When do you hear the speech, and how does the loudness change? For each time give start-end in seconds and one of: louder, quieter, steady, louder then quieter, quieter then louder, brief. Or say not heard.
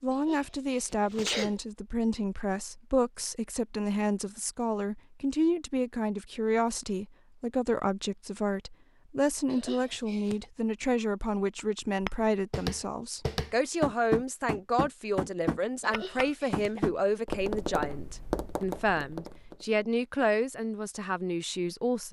0.0-22.0 steady.